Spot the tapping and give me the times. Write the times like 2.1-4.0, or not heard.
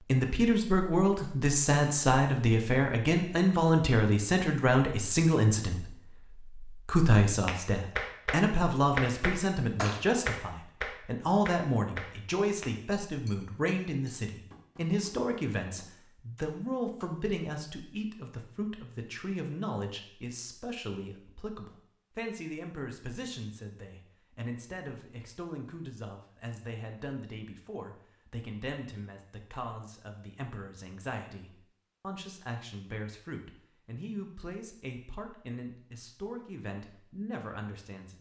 7.5-17.1.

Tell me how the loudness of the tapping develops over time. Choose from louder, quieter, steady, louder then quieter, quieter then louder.
quieter.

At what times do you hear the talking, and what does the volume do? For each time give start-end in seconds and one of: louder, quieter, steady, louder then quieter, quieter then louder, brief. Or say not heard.
0.0-38.1 quieter.